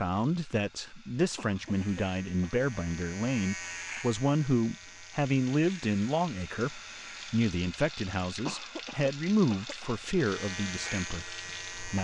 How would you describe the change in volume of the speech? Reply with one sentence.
The loudness of the speech stays about the same.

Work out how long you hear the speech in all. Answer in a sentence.
You can hear the speech for 12 seconds altogether.